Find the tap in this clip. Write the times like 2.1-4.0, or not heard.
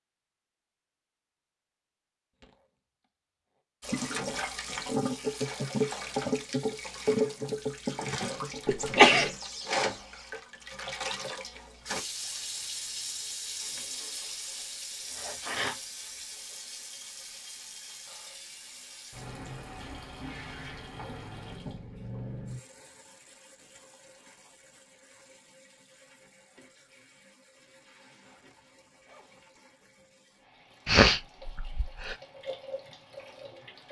3.8-33.8.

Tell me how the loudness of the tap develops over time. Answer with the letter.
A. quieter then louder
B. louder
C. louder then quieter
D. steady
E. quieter
E.